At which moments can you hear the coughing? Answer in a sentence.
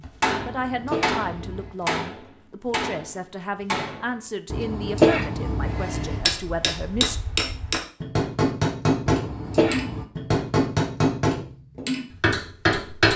You can hear the coughing from 0.4 to 1.8 s, from 4.5 to 6.2 s and from 9.1 to 10.1 s.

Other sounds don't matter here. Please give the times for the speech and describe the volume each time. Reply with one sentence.
The speech can be heard from 0.0 to 7.2 s, at a steady volume.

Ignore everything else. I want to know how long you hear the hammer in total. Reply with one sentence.
You can hear the hammer for 12 seconds altogether.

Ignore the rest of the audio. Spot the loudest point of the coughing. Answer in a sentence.
The volume of the coughing peaks at 5 seconds.